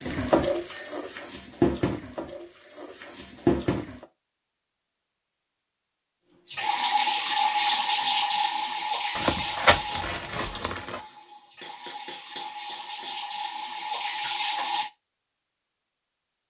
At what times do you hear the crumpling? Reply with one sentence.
You can hear the crumpling from 9.2 to 11.0 s.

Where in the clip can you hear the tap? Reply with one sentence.
You can hear the tap from 0.0 to 4.0 s and from 6.5 to 14.9 s.